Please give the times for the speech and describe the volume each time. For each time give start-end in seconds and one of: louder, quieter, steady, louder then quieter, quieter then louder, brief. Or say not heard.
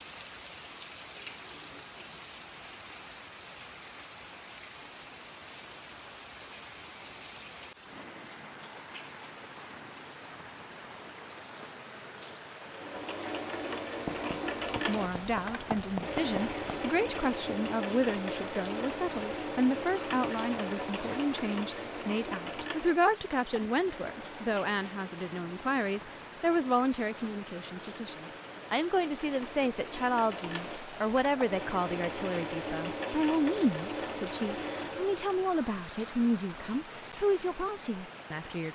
14.8-38.7 steady.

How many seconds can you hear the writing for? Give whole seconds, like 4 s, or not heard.
3 s.